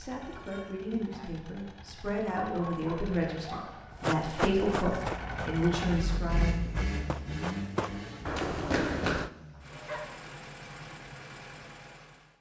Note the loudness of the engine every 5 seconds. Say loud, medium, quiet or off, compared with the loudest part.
medium, loud, medium.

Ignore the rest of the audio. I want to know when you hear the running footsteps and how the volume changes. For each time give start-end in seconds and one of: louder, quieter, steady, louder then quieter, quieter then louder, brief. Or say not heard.
4.0-9.3 quieter then louder.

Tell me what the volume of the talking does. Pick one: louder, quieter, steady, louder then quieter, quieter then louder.
louder.